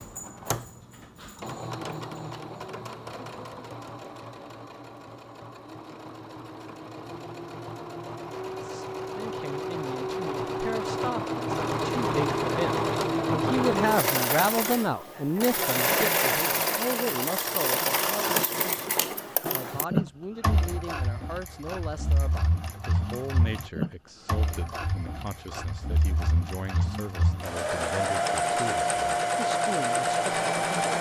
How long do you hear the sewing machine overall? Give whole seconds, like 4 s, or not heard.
31 s.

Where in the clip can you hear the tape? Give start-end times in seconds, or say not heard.
not heard.